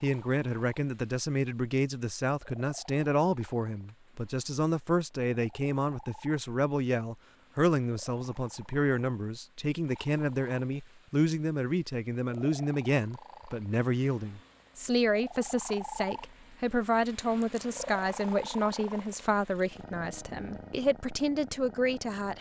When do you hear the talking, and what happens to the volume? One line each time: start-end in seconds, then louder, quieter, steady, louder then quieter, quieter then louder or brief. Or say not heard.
0.0-22.3 steady.